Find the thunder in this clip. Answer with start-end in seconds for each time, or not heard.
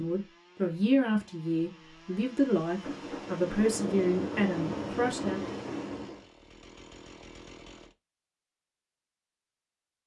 2.8-6.2.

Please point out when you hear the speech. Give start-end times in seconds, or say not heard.
0.0-5.5.